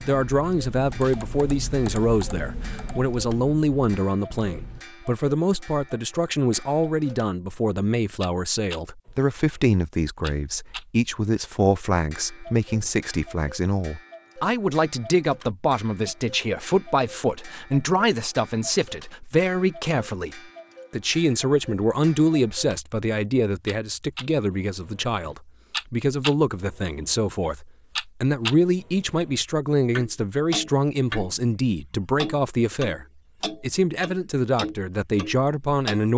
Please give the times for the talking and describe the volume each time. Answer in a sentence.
You can hear the talking from 0.1 to 36.1 s, at a steady volume.